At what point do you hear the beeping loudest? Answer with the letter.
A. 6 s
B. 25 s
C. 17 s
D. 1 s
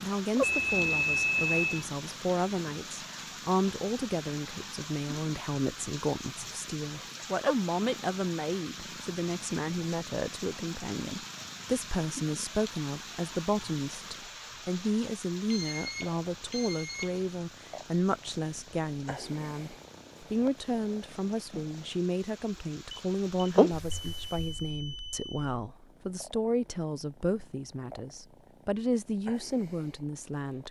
D.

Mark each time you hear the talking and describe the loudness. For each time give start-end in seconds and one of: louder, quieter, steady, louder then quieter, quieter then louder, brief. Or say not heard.
0.0-30.6 steady.